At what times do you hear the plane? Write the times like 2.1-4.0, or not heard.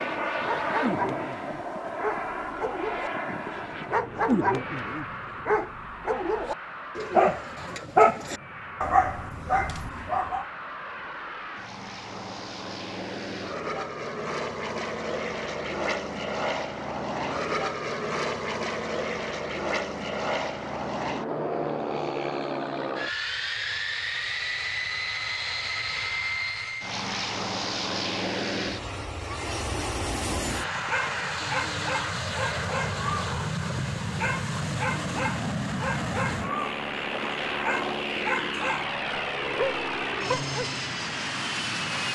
0.0-42.1.